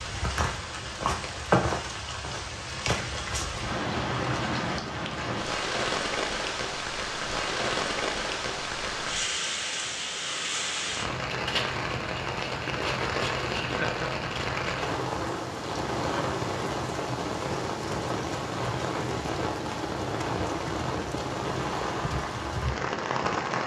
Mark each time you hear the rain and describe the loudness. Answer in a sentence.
The rain can be heard from 0.0 to 23.6 s, at a steady volume.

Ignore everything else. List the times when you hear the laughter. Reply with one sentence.
The laughter can be heard from 13.6 to 14.2 s.